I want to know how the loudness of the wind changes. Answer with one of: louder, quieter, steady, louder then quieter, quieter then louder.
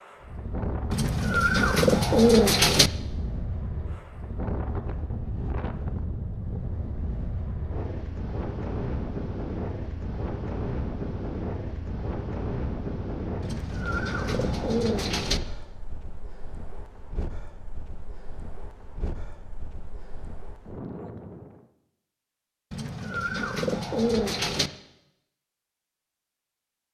quieter.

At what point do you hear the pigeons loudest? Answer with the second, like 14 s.
2 s.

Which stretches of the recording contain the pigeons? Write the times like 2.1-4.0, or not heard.
0.9-2.9, 13.4-15.4, 22.7-24.7.